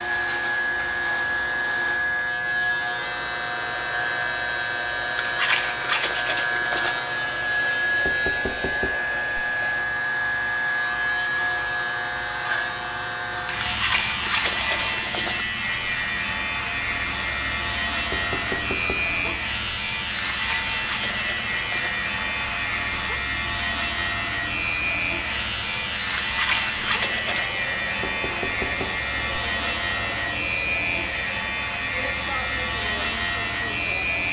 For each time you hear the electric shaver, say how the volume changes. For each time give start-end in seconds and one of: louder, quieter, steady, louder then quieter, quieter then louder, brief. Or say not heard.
0.0-34.2 steady.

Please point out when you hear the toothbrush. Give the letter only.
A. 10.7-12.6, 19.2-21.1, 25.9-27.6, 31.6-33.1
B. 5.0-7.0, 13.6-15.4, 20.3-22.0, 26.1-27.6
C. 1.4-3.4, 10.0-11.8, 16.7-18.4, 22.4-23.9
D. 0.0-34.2
B.